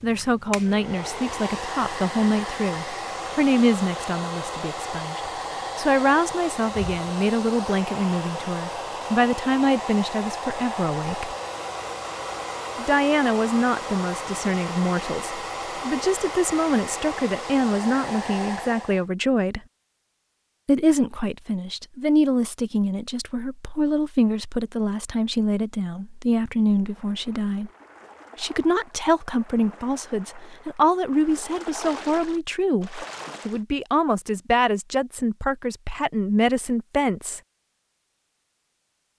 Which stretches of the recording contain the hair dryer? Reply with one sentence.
You can hear the hair dryer from 0.0 to 19.1 s.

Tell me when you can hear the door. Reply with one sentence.
The door can't be heard in this clip.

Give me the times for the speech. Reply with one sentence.
The speech can be heard from 0.0 to 11.3 s, from 12.8 to 19.6 s, from 20.6 to 27.7 s and from 28.4 to 37.4 s.